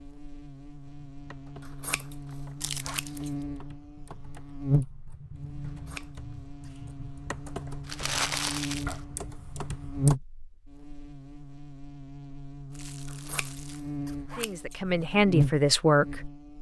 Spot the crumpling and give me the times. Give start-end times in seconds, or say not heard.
2.6-3.2, 7.8-9.0, 12.7-13.8.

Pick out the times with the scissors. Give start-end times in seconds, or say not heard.
1.6-3.3, 5.7-6.7, 13.1-15.1.